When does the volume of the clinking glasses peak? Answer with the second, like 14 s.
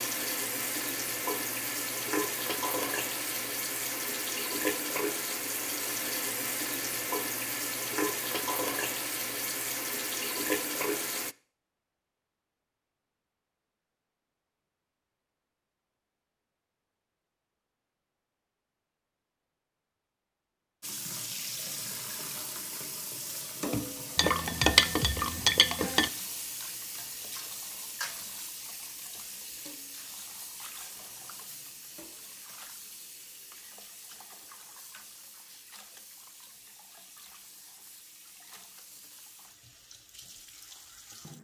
25 s.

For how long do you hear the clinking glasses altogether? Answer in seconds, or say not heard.
2 s.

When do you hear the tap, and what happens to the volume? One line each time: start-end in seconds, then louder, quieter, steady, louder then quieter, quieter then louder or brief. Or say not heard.
0.0-11.3 steady
20.8-41.3 quieter.